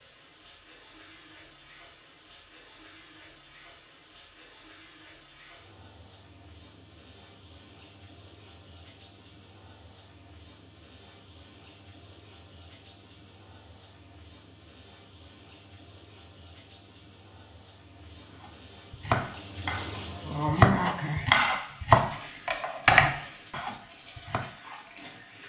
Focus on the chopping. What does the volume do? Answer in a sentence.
The volume of the chopping goes up, then down.